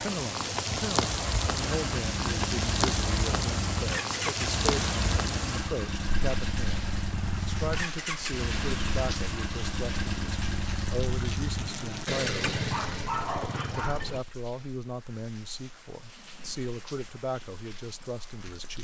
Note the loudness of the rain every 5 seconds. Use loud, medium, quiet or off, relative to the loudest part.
loud, medium, quiet, quiet.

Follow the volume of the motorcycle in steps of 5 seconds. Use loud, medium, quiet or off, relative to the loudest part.
loud, loud, loud, off.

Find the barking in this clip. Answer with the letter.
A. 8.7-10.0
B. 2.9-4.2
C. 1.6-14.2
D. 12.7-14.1
D.